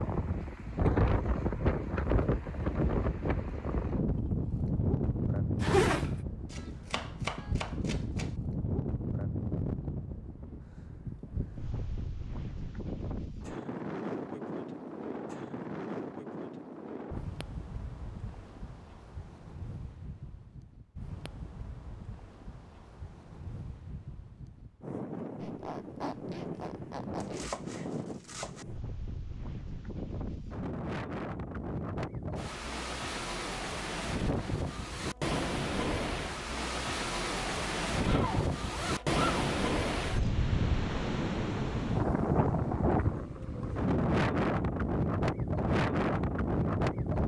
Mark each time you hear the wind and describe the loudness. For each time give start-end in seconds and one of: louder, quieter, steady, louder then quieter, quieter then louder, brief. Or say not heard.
0.0-47.2 quieter then louder.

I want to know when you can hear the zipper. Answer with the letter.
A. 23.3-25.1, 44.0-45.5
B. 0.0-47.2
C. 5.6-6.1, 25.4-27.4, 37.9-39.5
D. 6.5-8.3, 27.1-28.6
C.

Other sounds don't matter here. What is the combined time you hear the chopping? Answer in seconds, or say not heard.
3 s.